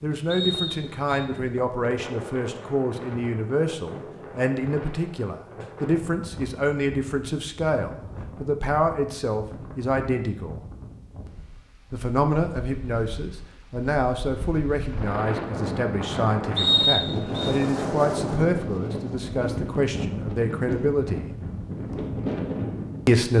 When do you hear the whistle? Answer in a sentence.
You can hear the whistle from 0.3 to 1.1 s and from 16.6 to 17.5 s.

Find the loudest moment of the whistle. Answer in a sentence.
The volume of the whistle peaks at 17 seconds.